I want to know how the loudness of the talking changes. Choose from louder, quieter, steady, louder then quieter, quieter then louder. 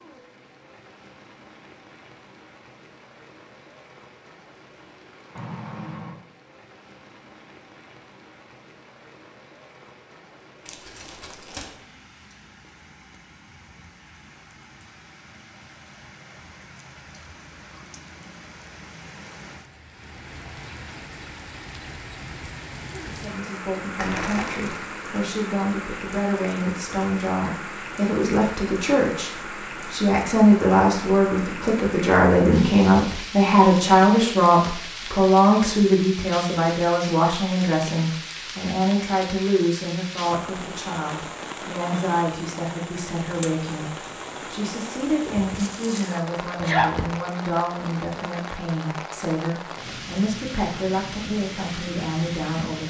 louder then quieter.